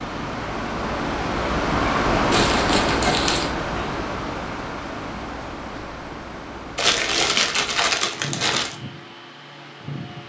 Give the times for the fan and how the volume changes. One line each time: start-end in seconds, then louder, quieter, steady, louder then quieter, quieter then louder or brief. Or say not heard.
0.0-10.2 quieter.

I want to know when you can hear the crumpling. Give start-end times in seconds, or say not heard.
2.3-3.5, 6.8-8.8.